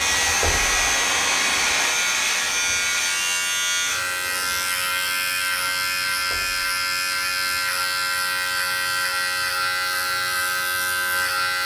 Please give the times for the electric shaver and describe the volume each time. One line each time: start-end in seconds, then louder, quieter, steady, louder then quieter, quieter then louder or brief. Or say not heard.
0.0-11.6 steady.